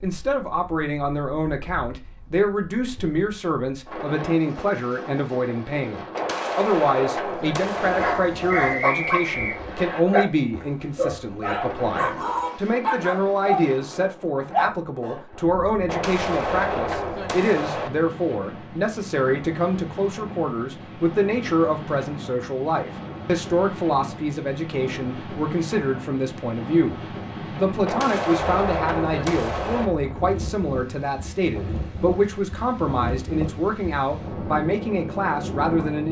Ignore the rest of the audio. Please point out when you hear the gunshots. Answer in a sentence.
You can hear the gunshots from 6.1 to 8.2 s, from 15.8 to 17.9 s and from 27.9 to 29.9 s.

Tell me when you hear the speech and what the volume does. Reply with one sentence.
The speech can be heard from 0.0 to 36.0 s, at a steady volume.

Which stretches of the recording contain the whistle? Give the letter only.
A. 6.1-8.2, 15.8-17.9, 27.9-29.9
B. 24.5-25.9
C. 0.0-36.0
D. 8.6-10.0
D.